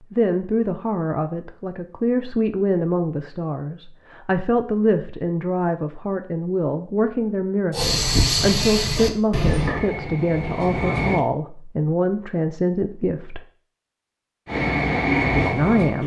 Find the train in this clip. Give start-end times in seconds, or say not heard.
7.7-11.2, 14.4-16.0.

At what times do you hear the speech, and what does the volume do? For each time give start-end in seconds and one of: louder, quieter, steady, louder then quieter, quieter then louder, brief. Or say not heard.
0.1-13.4 steady
15.3-16.0 brief.